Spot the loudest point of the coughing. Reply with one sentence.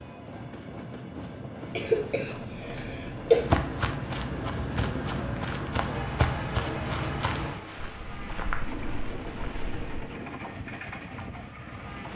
The volume of the coughing peaks at 3 seconds.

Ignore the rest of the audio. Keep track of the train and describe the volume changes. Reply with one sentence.
The volume of the train stays about the same.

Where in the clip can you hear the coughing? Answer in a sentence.
The coughing can be heard from 1.8 to 3.5 s.